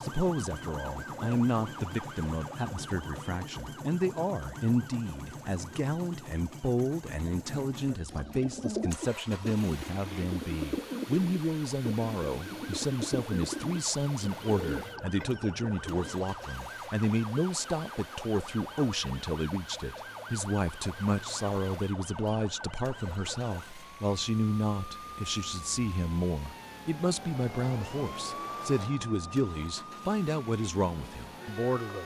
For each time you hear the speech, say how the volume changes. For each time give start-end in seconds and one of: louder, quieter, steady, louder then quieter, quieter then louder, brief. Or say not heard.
0.0-32.0 steady.